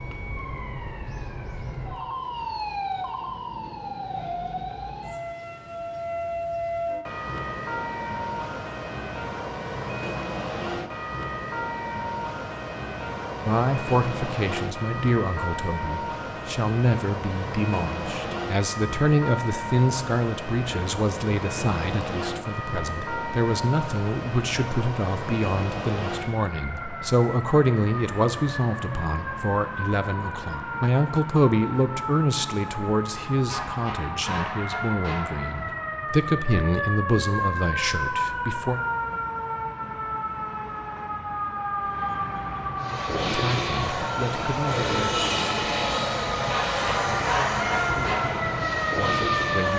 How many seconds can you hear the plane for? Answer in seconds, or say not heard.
7 s.